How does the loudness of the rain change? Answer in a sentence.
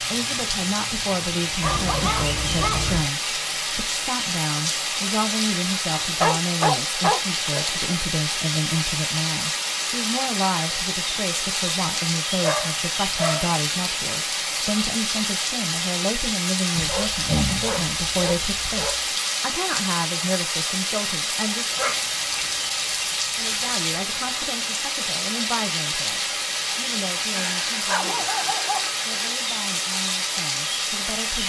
The loudness of the rain stays about the same.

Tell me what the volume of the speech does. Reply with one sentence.
The loudness of the speech goes down.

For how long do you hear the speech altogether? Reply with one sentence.
The speech can be heard for 30 seconds in total.